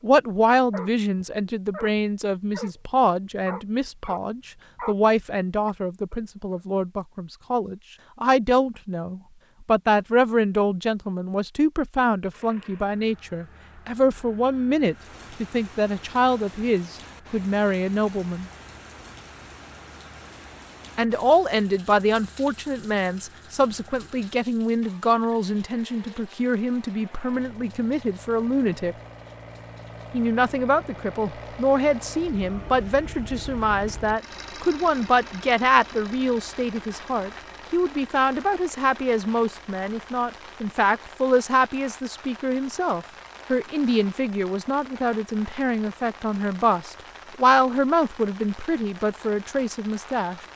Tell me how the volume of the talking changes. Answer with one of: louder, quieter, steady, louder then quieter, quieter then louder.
steady.